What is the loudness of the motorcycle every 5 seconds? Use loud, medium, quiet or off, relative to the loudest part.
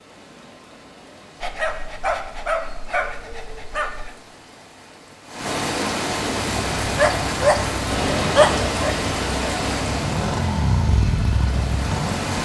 off, medium, loud.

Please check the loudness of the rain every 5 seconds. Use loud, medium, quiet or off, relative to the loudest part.
quiet, loud, medium.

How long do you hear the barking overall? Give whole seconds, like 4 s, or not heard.
5 s.